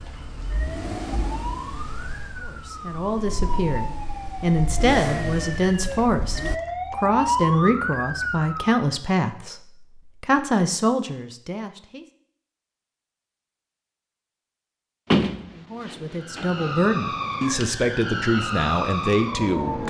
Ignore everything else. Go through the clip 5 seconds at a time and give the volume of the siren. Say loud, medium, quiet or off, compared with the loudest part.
medium, loud, off, loud.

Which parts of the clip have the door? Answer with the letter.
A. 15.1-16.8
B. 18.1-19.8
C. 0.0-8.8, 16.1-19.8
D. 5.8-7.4
A.